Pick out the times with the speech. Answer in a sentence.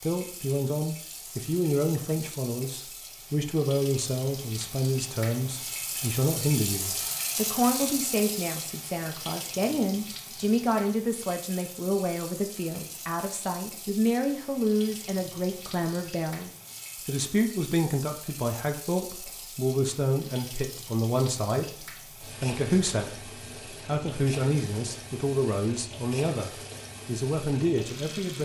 You can hear the speech from 0.0 to 28.4 s.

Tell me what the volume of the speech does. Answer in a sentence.
The volume of the speech stays about the same.